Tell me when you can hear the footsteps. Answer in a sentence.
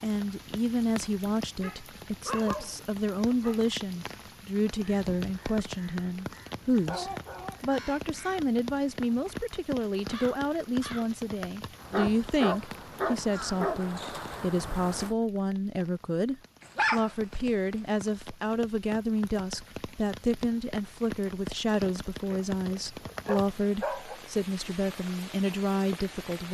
You can't hear the footsteps here.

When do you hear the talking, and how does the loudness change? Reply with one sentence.
You can hear the talking from 0.0 to 26.4 s, at a steady volume.